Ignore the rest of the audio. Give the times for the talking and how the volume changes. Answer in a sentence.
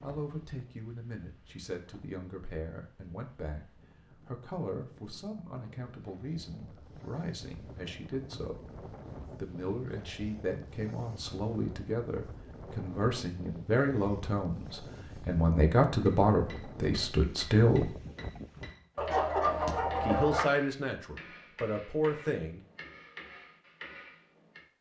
The talking can be heard from 0.0 to 17.9 s, getting louder; and briefly from 20.0 to 22.6 s.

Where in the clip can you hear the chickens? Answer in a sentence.
You can hear the chickens from 18.9 to 20.5 s.